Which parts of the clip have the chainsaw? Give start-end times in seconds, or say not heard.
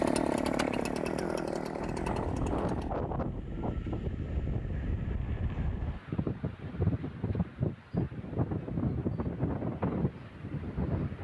0.0-2.9.